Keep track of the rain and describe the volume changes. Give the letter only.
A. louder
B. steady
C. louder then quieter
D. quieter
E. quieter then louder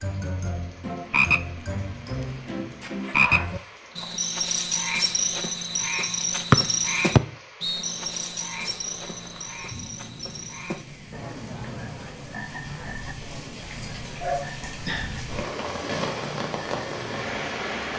A.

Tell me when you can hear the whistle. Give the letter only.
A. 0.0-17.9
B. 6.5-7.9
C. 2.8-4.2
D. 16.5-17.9
B.